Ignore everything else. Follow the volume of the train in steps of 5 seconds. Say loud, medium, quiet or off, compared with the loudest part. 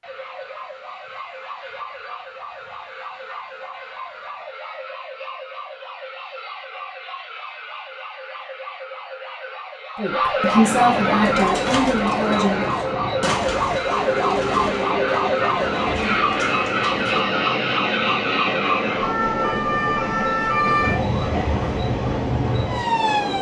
off, off, loud, loud, loud.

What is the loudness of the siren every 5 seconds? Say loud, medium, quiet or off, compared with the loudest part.
quiet, quiet, loud, loud, loud.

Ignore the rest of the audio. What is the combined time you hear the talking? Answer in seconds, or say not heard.
3 s.